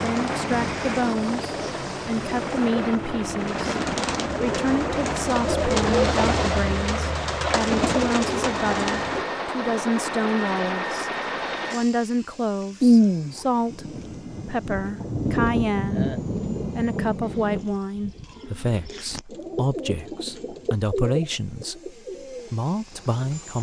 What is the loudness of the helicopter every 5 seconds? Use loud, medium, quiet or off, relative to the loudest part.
loud, loud, loud, quiet, quiet.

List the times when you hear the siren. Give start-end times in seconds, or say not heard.
not heard.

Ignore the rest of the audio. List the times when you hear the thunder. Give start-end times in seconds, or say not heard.
12.8-17.6.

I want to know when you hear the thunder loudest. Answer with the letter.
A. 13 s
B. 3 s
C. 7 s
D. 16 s
A.